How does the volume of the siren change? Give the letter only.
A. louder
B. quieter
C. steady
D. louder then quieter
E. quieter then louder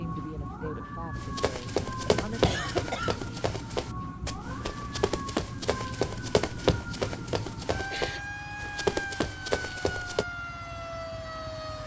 C.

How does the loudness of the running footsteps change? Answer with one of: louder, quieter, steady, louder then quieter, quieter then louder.
quieter then louder.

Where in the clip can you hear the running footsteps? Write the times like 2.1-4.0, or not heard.
1.1-10.2.